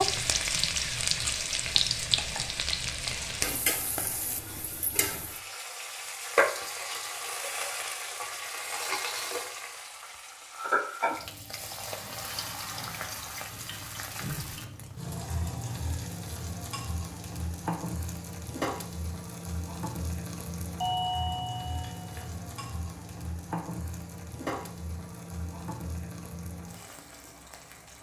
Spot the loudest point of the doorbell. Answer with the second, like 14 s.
21 s.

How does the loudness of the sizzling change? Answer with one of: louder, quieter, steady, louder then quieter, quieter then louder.
quieter.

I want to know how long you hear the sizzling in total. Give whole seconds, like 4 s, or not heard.
28 s.